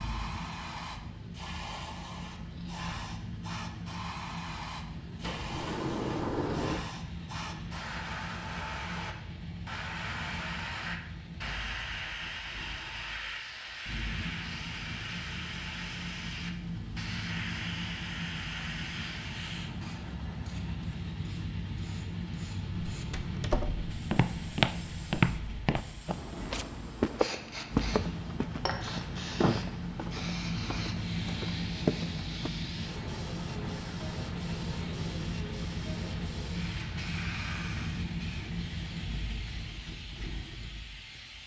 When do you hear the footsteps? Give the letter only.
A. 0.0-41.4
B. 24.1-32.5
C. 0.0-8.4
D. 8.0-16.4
B.